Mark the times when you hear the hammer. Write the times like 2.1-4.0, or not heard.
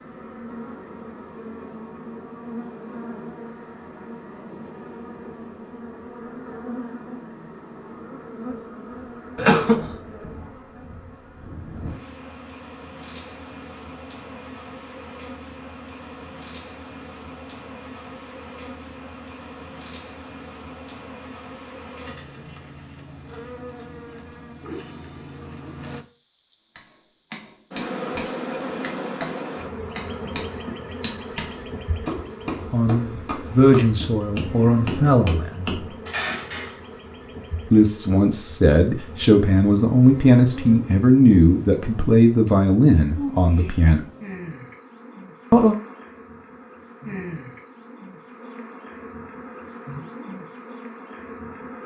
26.8-36.8.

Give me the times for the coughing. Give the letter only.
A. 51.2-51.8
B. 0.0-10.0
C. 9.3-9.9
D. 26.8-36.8
C.